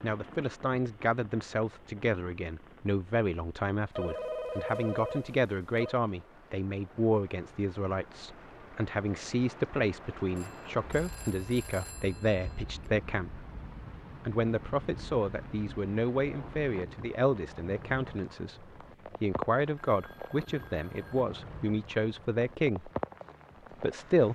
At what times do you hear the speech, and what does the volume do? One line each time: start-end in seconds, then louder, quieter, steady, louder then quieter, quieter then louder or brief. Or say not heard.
0.0-13.4 steady
14.2-22.9 steady
23.8-24.3 brief.